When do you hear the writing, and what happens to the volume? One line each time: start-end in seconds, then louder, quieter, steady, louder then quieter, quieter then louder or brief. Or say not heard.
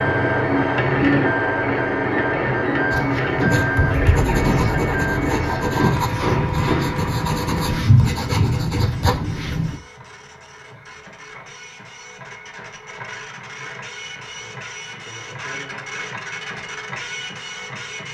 2.9-9.8 steady.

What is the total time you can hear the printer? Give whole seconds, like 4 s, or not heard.
18 s.